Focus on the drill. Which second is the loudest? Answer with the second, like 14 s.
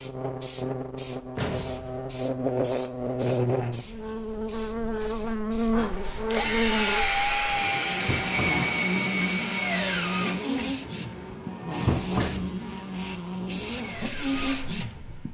7 s.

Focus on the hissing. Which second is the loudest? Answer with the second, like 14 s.
12 s.